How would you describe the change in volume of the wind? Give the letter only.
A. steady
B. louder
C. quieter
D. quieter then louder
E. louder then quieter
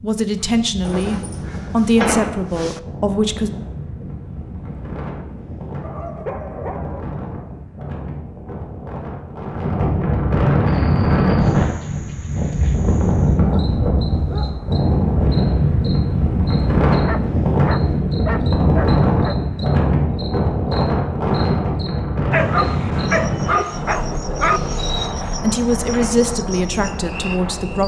E.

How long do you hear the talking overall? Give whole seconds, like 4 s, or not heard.
6 s.